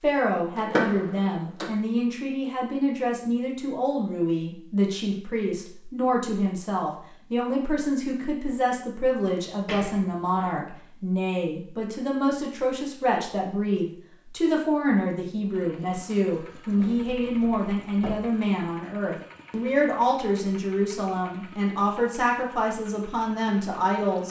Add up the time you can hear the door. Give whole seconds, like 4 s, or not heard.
4 s.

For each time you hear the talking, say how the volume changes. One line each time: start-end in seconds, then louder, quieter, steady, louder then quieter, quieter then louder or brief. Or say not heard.
0.0-24.2 steady.